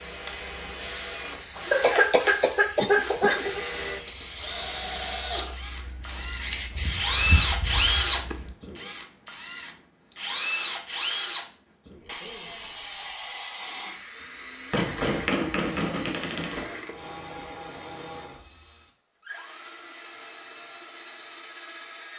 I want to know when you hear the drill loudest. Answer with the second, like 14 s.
8 s.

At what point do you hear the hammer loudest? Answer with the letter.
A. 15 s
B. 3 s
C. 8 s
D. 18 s
A.